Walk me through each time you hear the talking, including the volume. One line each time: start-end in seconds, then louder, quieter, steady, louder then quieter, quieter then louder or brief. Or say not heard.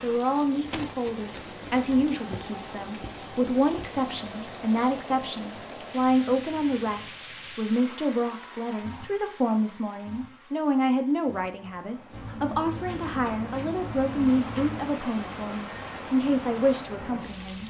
0.0-17.6 steady.